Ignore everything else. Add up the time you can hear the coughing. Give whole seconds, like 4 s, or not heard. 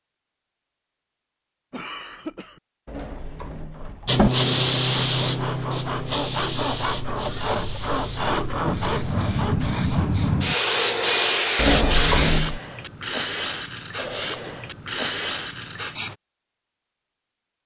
2 s.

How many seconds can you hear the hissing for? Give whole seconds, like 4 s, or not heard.
12 s.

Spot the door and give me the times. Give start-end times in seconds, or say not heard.
2.9-4.3, 11.6-12.6.